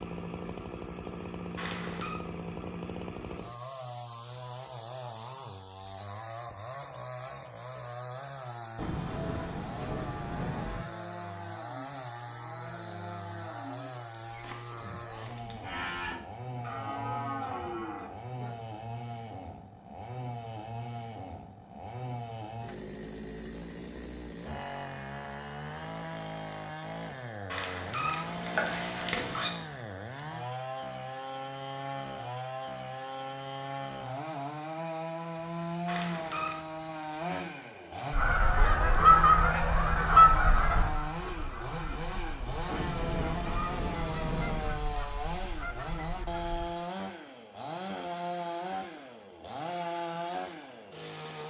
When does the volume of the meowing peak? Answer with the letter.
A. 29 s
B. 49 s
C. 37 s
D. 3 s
A.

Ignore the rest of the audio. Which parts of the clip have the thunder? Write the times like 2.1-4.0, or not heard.
8.8-10.8, 42.6-44.7.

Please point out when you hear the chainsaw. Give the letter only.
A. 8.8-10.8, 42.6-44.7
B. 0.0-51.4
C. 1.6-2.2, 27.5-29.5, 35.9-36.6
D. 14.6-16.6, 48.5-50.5
B.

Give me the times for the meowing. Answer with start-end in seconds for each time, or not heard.
1.6-2.2, 27.5-29.5, 35.9-36.6.